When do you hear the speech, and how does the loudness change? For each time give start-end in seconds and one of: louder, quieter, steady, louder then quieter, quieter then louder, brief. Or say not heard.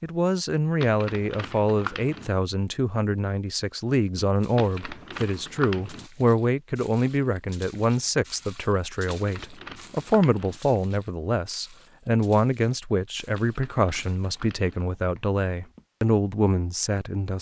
0.0-17.3 steady.